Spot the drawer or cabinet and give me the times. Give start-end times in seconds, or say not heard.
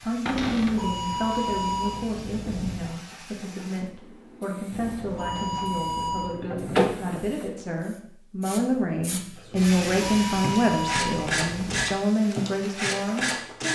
0.2-0.8, 5.3-7.2, 9.8-10.7.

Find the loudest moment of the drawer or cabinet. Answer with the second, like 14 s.
7 s.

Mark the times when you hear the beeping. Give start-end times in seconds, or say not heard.
0.3-2.9, 4.7-6.3, 9.6-11.9.